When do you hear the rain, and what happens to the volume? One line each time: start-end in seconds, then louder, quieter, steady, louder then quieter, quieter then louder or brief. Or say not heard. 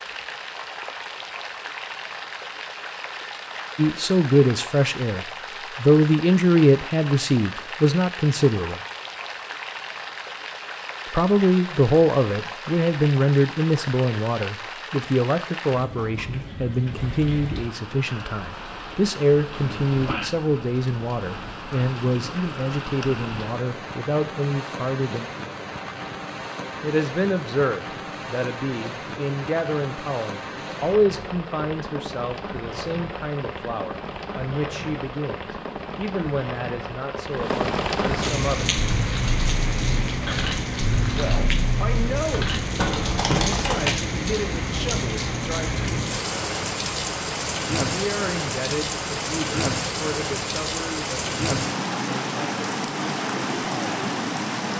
0.0-54.7 louder.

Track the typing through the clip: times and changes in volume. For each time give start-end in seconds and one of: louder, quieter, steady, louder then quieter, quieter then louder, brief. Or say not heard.
38.8-43.9 louder.